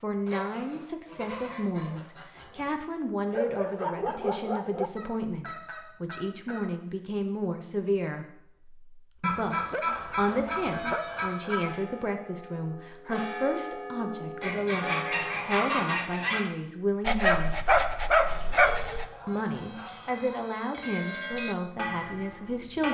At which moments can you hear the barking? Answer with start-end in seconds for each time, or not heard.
3.3-4.9, 9.5-11.2, 17.1-19.1.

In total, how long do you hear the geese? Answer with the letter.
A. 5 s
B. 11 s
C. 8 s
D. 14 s
B.